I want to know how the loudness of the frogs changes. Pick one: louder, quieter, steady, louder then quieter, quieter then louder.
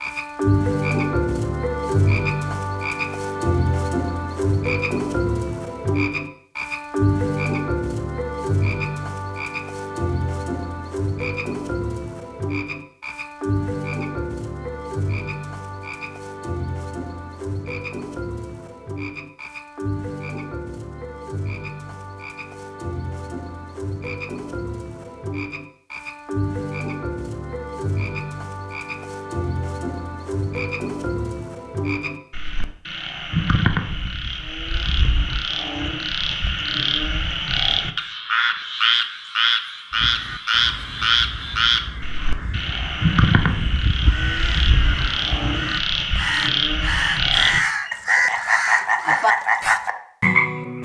quieter then louder.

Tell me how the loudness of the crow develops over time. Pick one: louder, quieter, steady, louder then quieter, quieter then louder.
louder.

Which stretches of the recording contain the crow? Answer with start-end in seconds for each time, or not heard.
39.9-49.8.